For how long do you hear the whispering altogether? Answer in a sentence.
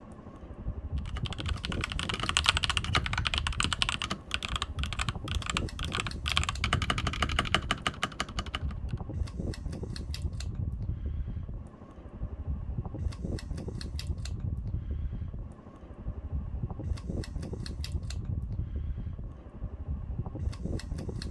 You can't hear the whispering here.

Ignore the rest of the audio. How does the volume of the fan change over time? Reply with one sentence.
The volume of the fan stays about the same.